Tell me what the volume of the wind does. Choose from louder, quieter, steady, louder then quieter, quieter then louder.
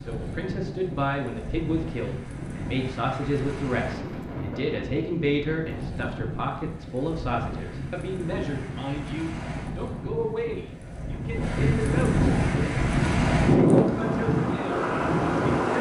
louder.